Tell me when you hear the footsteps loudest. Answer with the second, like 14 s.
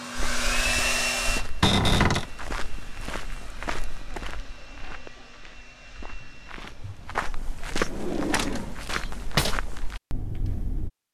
8 s.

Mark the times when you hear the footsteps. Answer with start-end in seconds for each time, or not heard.
0.1-10.9.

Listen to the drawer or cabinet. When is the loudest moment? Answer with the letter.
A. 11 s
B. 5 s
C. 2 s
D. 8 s
C.